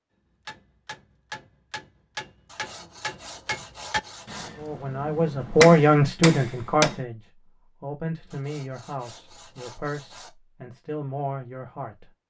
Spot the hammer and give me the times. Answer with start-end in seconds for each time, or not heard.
0.5-7.0.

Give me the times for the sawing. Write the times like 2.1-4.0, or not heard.
2.5-4.5, 8.3-10.3.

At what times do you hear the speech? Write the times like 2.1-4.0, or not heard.
4.5-12.1.